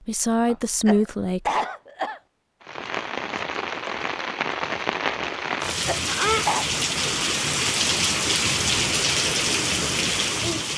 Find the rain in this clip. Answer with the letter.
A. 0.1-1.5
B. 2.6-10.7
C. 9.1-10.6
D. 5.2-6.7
B.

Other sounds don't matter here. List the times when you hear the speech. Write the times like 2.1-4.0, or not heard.
0.1-1.5.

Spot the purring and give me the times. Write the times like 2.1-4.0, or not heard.
not heard.